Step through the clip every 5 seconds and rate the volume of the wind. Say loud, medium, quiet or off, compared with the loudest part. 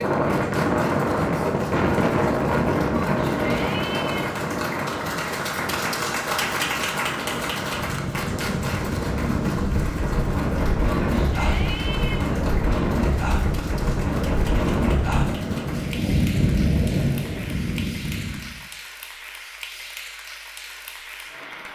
loud, medium, loud, loud, off.